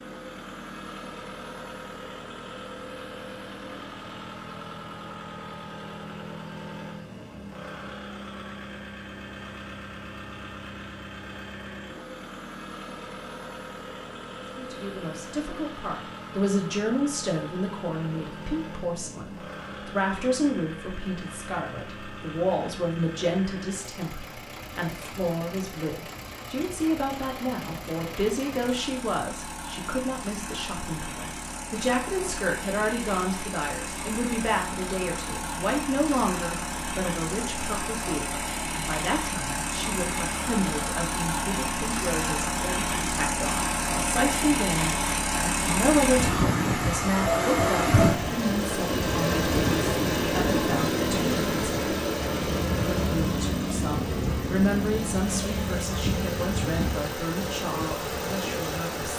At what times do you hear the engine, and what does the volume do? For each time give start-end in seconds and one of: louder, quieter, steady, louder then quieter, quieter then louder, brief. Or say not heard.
0.0-59.1 louder.